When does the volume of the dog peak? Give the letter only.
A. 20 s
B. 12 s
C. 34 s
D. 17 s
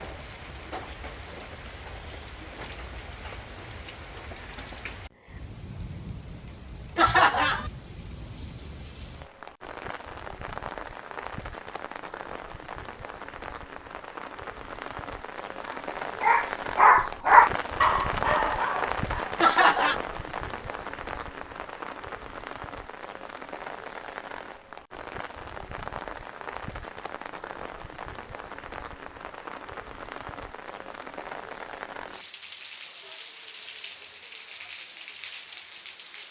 D.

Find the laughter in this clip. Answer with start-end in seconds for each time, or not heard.
7.0-7.7, 19.4-20.0.